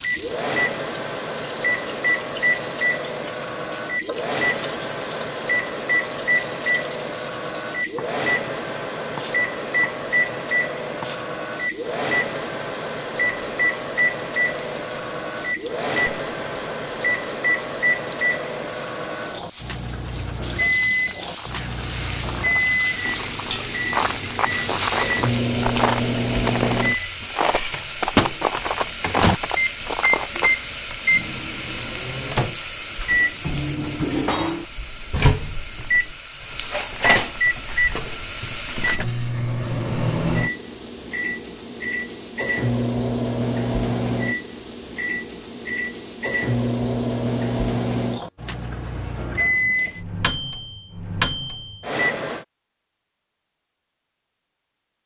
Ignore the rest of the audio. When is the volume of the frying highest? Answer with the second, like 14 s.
35 s.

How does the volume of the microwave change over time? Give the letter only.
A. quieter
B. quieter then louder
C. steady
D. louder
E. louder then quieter
C.